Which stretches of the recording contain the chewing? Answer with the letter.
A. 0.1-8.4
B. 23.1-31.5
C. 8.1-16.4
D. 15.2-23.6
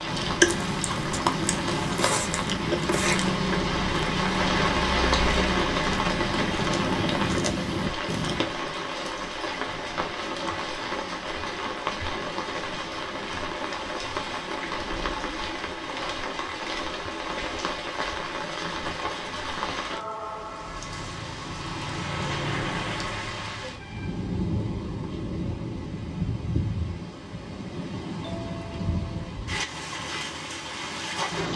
A.